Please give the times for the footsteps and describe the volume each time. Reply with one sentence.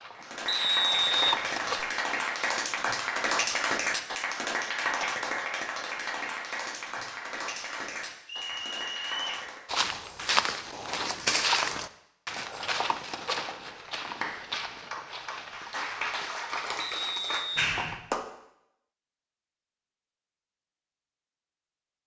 You can hear the footsteps briefly from 0.0 to 1.8 s; and from 9.7 to 17.9 s, getting quieter.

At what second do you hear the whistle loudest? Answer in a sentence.
The loudest moment of the whistle is at 1 second.